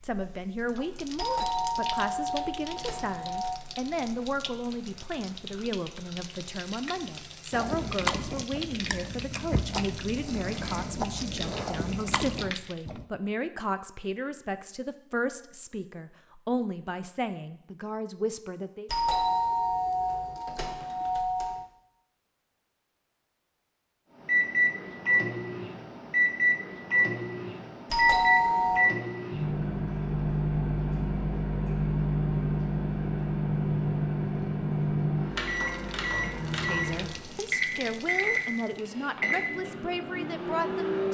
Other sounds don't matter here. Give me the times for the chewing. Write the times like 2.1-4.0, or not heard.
7.5-13.1.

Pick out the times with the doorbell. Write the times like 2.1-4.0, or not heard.
1.1-3.6, 18.9-21.6, 27.9-28.9.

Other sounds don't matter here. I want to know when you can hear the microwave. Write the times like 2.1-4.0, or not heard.
24.2-41.0.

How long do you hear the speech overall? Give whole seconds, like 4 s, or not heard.
23 s.